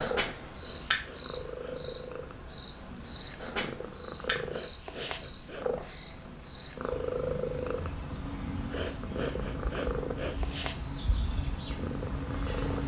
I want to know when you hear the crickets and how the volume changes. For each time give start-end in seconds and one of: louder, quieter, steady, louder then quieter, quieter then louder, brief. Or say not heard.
0.0-12.8 quieter.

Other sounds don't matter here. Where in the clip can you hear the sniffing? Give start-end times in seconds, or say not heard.
0.6-1.9, 4.5-5.7, 8.7-10.4.